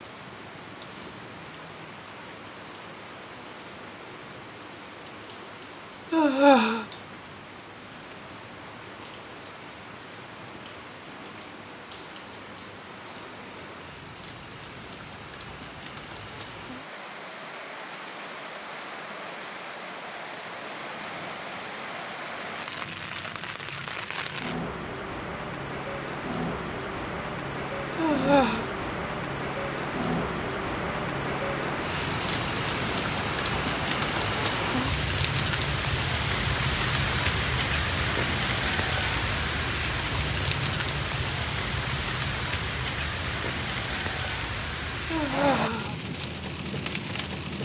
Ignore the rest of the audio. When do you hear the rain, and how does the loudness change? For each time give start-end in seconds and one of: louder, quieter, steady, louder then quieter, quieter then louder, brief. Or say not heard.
0.0-47.6 louder.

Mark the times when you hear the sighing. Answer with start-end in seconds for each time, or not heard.
6.1-6.8, 27.9-28.6, 45.1-46.0.